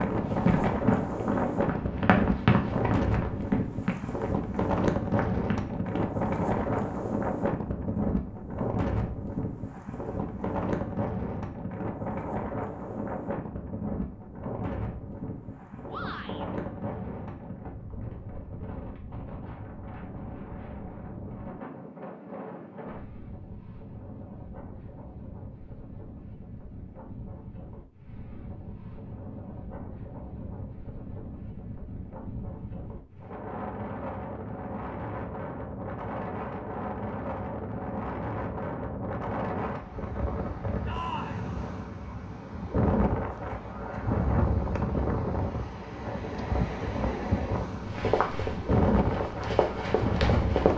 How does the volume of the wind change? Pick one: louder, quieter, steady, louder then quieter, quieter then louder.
quieter then louder.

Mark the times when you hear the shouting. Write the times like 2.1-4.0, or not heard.
15.8-16.4, 40.9-41.5.